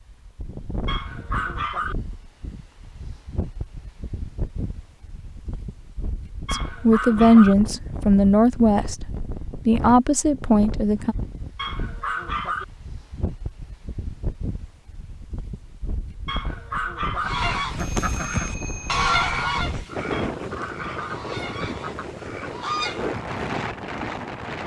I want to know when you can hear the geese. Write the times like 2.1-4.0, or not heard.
17.1-23.2.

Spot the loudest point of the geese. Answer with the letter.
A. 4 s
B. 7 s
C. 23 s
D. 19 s
D.